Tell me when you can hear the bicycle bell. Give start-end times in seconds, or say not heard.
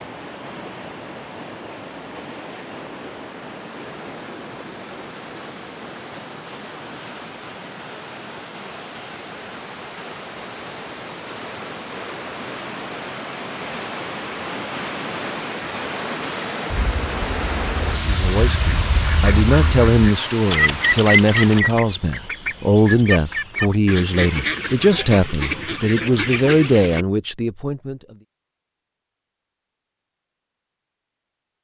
not heard.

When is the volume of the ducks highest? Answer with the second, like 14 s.
21 s.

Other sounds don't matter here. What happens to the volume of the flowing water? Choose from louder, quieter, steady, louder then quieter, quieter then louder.
louder.